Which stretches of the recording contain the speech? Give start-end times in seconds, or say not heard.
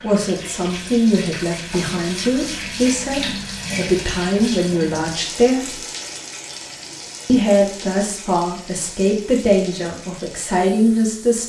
0.0-5.8, 7.2-11.4.